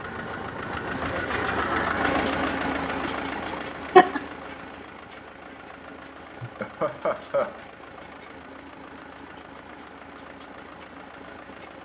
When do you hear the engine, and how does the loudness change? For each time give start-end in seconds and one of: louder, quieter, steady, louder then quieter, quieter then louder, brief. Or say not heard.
0.0-11.7 quieter.